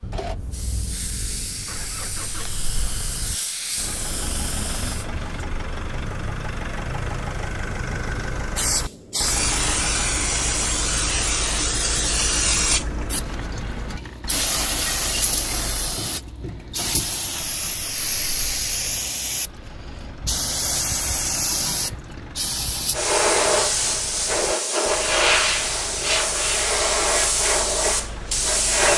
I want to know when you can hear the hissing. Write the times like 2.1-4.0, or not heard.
0.0-5.5, 8.6-28.9.